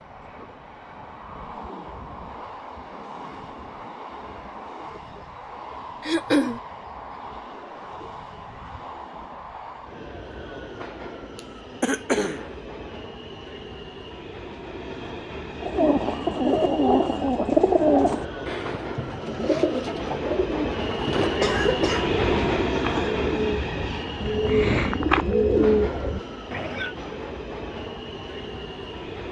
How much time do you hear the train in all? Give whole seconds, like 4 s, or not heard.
29 s.